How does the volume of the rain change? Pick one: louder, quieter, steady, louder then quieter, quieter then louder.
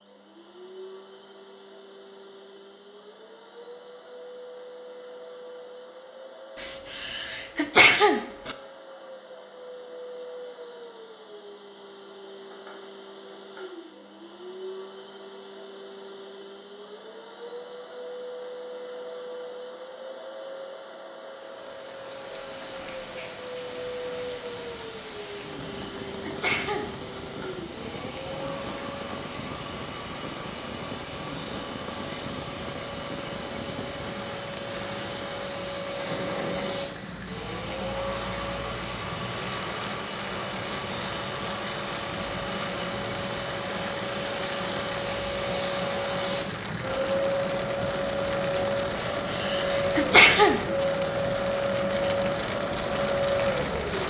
louder.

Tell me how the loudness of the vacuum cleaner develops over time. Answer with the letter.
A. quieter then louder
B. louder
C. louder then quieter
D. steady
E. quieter
B.